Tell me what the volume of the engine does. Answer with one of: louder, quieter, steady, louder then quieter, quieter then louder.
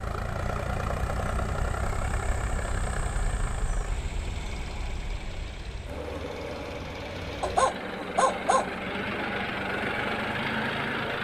quieter then louder.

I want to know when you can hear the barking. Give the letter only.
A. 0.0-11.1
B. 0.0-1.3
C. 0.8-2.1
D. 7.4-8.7
D.